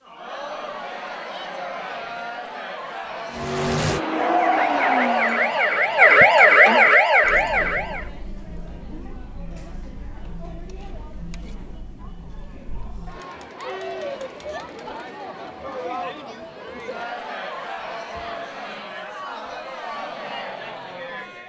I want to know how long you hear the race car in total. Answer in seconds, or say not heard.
2 s.